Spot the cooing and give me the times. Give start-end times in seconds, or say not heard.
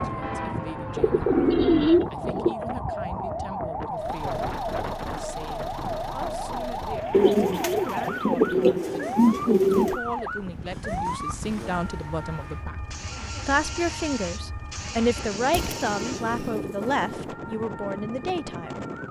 0.9-2.5, 7.1-10.0, 15.5-17.1.